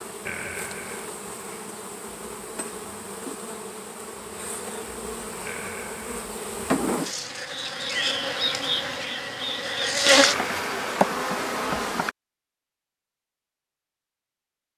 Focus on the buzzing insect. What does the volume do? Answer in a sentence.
The loudness of the buzzing insect goes up.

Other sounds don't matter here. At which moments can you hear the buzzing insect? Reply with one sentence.
You can hear the buzzing insect from 0.0 to 12.2 s.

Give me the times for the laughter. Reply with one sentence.
The laughter can be heard from 0.2 to 1.1 s, from 5.5 to 6.2 s and from 10.3 to 11.0 s.